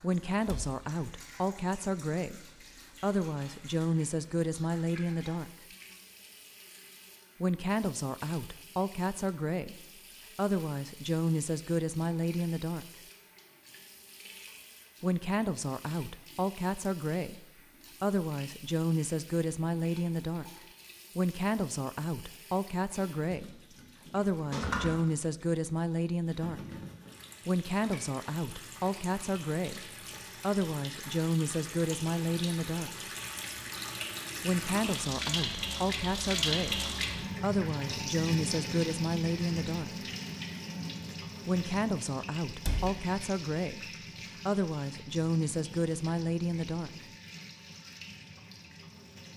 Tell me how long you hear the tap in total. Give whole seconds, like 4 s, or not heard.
49 s.